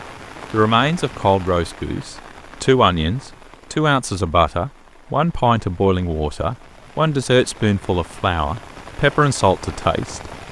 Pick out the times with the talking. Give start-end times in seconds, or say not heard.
0.5-10.3.